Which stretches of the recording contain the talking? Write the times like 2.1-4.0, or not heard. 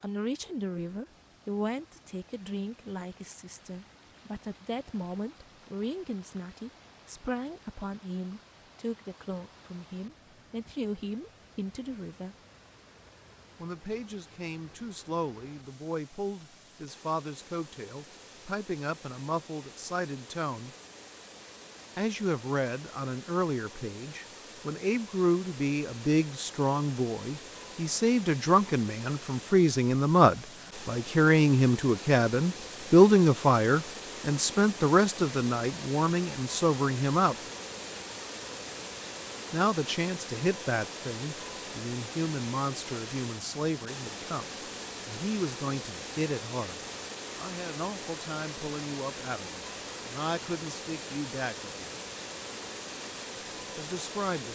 0.0-12.3, 13.6-20.7, 21.9-37.4, 39.5-51.9, 53.8-54.4.